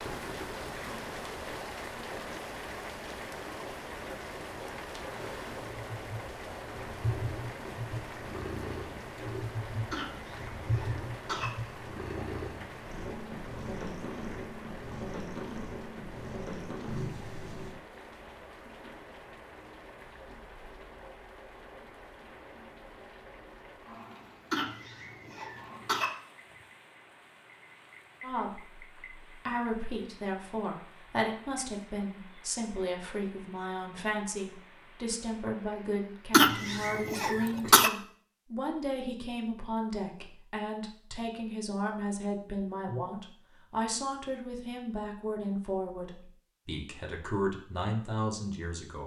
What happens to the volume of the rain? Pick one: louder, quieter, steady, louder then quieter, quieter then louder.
quieter.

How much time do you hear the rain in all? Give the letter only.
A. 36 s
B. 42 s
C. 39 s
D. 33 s
A.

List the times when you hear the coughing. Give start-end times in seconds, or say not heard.
9.9-11.5, 24.5-26.1, 36.3-37.9.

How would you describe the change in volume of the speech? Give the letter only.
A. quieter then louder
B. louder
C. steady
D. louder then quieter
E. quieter
C.